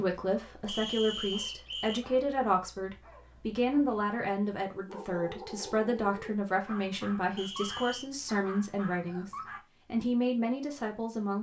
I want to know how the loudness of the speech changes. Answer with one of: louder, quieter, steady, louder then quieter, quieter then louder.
steady.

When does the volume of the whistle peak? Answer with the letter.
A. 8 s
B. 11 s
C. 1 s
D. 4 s
C.